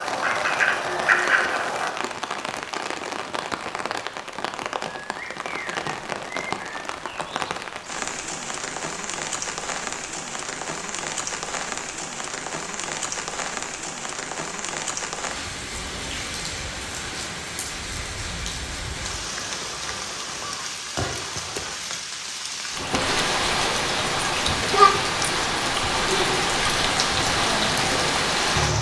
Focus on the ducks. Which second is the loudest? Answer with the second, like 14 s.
1 s.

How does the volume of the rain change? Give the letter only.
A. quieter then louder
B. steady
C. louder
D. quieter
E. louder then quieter
C.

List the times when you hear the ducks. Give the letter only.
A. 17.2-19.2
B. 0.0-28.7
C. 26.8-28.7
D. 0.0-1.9
D.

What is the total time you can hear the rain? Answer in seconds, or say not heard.
29 s.